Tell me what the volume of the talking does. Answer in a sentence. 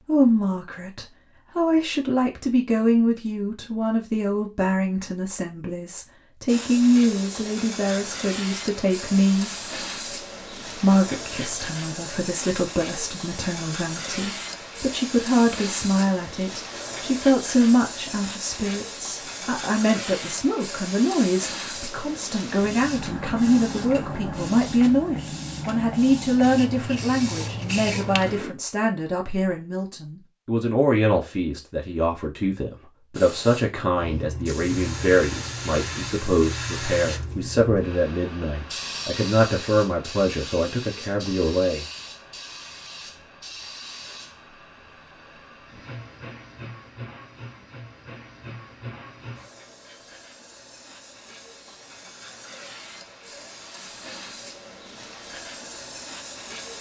The loudness of the talking stays about the same.